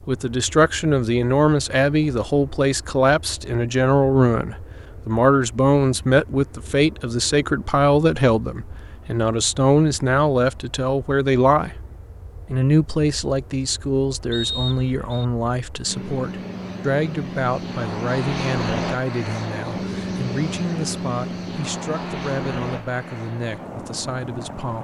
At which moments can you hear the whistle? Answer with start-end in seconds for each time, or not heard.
14.3-15.2.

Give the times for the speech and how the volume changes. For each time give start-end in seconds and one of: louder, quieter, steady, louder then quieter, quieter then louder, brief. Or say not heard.
0.1-11.8 steady
12.4-24.8 quieter.